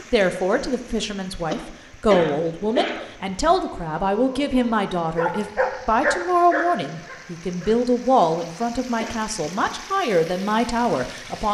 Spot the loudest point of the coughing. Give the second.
3 s.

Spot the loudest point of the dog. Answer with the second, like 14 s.
6 s.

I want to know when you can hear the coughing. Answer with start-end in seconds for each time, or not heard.
1.4-3.1, 8.3-9.2.